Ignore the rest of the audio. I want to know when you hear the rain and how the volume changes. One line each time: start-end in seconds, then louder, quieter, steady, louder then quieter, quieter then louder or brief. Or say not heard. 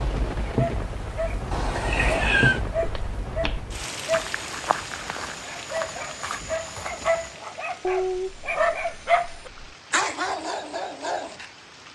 0.0-11.8 quieter.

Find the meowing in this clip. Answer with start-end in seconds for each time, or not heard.
1.5-2.6, 7.8-9.8.